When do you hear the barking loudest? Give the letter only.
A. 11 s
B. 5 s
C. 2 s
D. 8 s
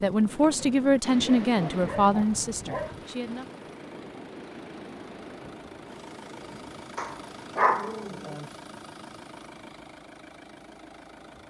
D.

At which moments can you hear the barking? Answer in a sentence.
You can hear the barking from 1.1 to 3.0 s and from 7.0 to 8.4 s.